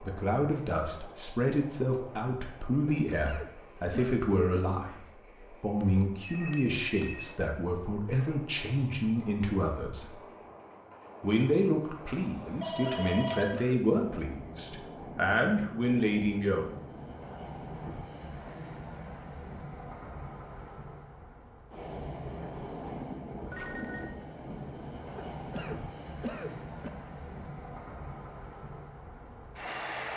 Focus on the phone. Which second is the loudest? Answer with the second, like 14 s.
13 s.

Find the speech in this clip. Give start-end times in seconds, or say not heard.
0.0-10.2, 11.2-16.6.